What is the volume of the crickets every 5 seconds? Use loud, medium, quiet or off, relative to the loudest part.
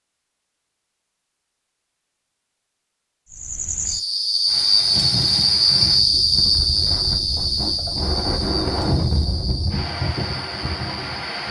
loud, loud, quiet.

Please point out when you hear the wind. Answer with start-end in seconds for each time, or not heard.
4.5-11.4.